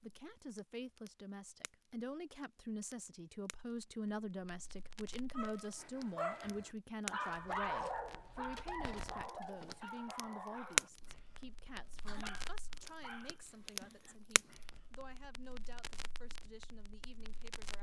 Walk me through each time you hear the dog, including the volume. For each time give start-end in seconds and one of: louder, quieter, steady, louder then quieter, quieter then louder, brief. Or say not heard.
5.3-14.8 quieter.